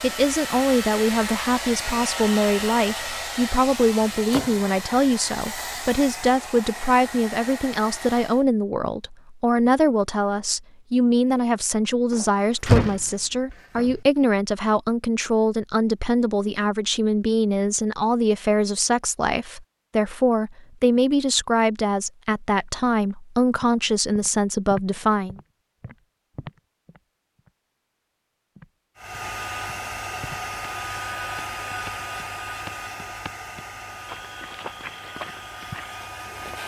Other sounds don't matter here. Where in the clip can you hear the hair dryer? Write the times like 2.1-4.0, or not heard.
0.0-8.4, 28.9-36.6.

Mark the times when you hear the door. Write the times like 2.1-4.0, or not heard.
12.1-13.9.